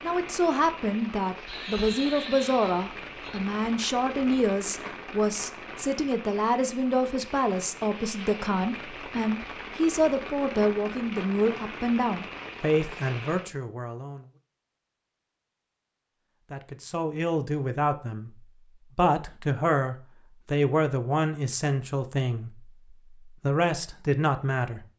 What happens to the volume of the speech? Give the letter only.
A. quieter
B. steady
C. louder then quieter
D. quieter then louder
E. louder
B.